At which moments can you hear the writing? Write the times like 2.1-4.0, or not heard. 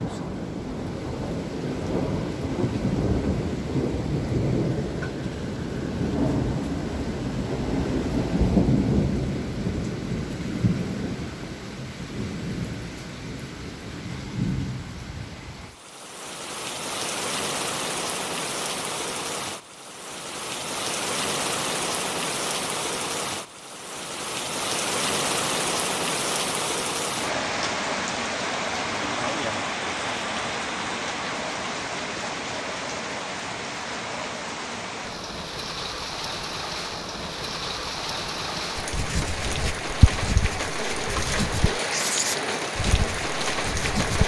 38.5-44.2.